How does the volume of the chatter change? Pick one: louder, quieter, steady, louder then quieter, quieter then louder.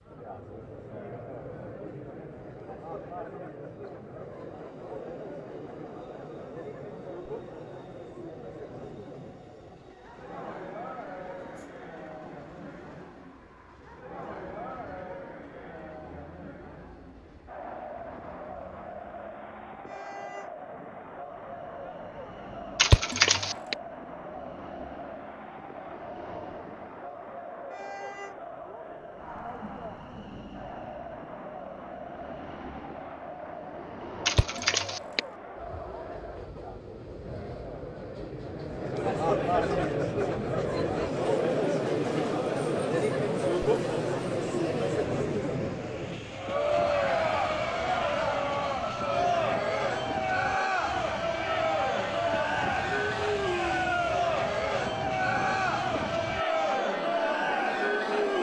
louder.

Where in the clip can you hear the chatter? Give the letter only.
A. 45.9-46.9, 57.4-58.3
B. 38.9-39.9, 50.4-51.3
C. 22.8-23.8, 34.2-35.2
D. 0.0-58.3
D.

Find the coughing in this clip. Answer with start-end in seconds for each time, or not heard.
22.8-23.8, 34.2-35.2.